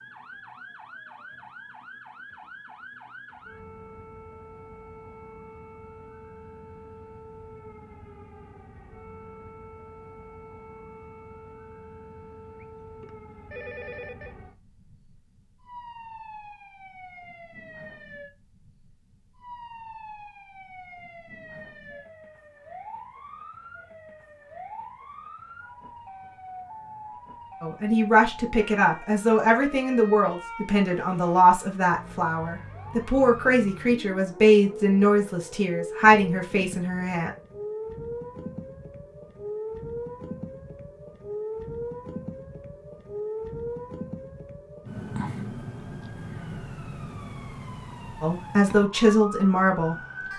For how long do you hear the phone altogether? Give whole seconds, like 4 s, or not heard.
2 s.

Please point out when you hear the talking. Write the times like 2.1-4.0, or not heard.
27.6-37.3, 48.2-50.0.